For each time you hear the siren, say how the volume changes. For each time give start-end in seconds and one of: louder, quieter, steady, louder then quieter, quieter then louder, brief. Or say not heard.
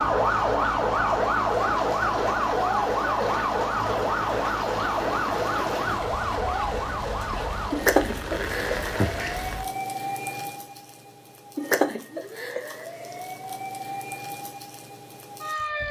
0.0-15.8 quieter.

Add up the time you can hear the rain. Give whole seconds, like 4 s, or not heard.
10 s.